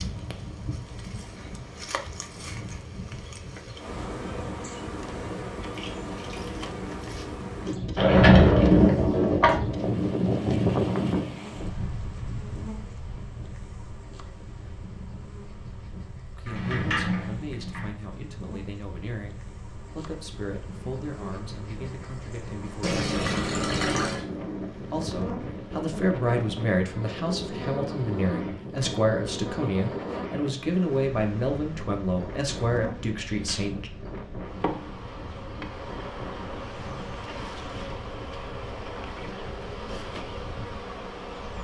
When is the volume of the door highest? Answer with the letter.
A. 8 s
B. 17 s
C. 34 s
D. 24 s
A.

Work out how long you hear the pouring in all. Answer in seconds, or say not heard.
3 s.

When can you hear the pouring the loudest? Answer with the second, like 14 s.
24 s.